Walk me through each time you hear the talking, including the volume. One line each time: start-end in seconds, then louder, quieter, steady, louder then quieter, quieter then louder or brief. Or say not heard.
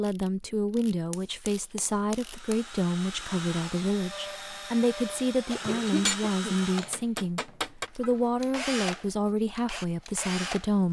0.0-10.8 steady.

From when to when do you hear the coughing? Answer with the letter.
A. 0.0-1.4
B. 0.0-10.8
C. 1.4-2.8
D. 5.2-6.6
D.